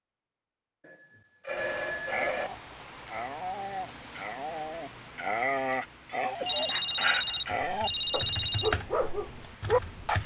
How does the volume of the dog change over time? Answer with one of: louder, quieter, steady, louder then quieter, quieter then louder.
louder.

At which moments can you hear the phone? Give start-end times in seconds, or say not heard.
0.8-2.5, 6.4-8.8.